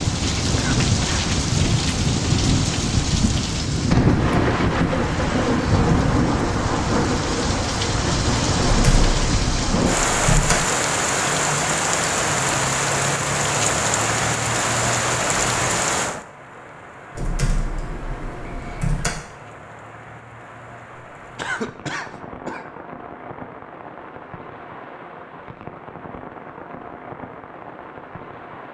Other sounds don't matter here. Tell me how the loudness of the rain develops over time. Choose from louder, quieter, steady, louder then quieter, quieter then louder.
quieter.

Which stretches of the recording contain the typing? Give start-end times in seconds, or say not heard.
8.6-10.6, 17.1-19.1.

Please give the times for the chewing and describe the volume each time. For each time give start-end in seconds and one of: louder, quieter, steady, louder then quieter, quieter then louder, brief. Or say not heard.
not heard.